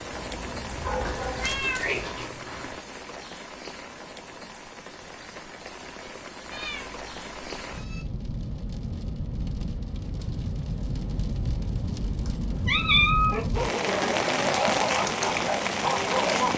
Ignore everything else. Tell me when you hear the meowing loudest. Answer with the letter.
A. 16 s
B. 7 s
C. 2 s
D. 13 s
D.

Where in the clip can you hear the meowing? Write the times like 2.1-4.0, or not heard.
1.0-2.8, 6.5-8.0, 12.2-13.4.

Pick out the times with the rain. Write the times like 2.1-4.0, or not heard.
0.0-16.5.